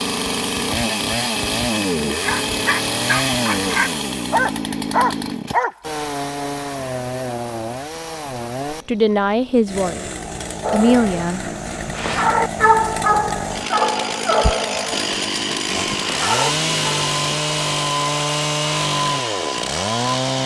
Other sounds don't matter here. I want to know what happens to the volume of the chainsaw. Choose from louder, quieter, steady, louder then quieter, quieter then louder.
quieter then louder.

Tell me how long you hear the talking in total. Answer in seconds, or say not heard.
2 s.